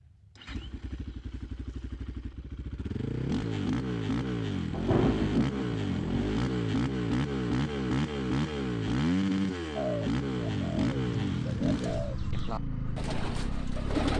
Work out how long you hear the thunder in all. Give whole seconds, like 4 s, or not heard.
2 s.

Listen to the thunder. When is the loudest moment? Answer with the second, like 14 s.
5 s.